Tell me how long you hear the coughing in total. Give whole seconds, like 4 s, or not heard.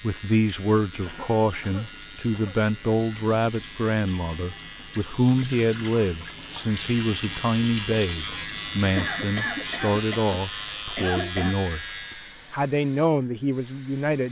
4 s.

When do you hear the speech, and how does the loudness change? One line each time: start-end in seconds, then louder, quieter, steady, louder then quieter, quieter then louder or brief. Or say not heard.
0.0-14.2 steady.